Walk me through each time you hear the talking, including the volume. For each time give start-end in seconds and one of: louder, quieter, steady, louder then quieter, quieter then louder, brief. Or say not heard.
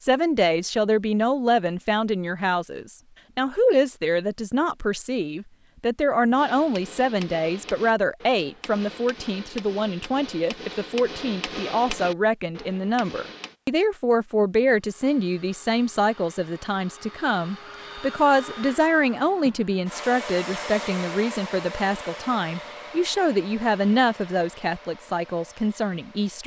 0.0-26.4 steady.